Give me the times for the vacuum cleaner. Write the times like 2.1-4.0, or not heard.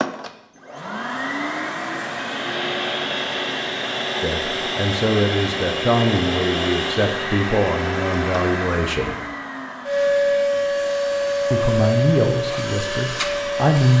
0.0-13.9.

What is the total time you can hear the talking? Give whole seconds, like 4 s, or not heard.
7 s.